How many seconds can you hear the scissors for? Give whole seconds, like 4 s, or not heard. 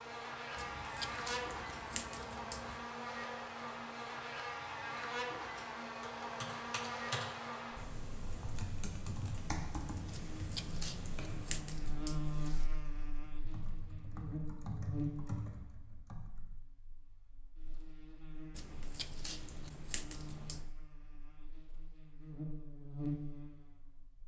7 s.